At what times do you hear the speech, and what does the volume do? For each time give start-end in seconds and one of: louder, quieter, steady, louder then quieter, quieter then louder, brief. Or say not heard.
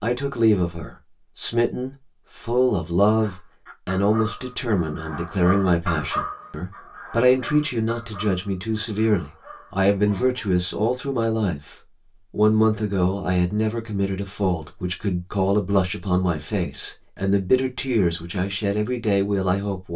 0.0-19.9 steady.